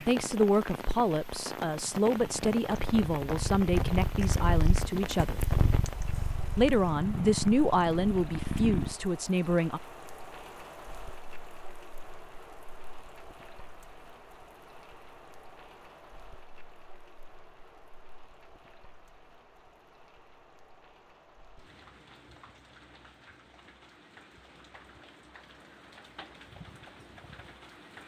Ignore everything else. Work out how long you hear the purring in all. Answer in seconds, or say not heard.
7 s.